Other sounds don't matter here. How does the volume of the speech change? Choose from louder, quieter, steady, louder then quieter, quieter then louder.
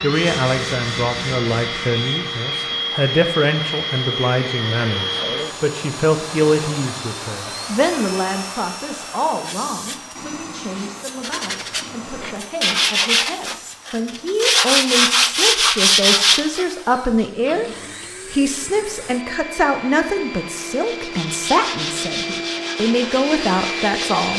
quieter then louder.